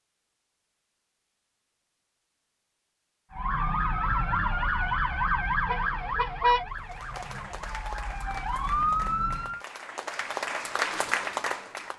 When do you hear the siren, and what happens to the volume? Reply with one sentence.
The siren can be heard from 3.3 to 9.6 s, getting quieter then louder.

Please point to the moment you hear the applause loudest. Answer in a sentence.
The loudest moment of the applause is at 11 seconds.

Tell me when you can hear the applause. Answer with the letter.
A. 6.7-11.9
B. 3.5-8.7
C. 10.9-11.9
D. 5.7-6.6
A.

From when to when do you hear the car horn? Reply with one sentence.
The car horn can be heard from 5.7 to 6.6 s.